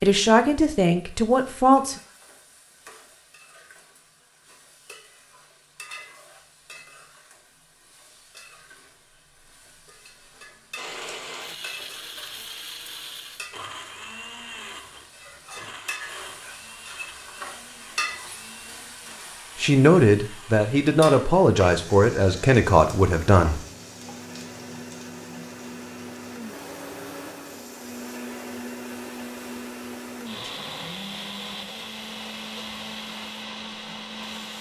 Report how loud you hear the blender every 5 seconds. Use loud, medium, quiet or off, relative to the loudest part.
off, off, loud, medium, medium, loud, loud.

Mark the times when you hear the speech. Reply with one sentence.
You can hear the speech from 0.0 to 1.9 s and from 19.6 to 23.6 s.